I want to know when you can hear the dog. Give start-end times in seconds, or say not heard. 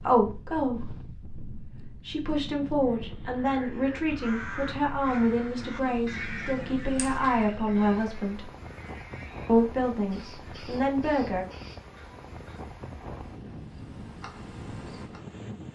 not heard.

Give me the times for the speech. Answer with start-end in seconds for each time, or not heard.
0.0-8.5, 9.4-11.4.